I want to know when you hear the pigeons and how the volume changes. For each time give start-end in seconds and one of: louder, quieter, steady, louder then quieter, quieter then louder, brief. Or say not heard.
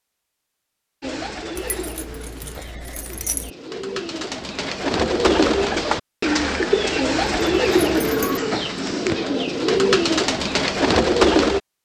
1.0-11.6 louder.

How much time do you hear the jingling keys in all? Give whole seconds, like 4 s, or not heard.
3 s.